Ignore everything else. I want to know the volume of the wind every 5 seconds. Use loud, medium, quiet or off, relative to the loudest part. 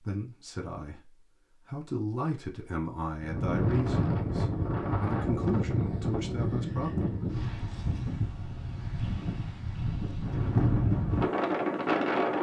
loud, medium, loud.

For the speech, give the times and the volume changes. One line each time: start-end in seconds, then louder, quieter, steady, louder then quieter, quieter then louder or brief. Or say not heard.
0.0-7.1 louder.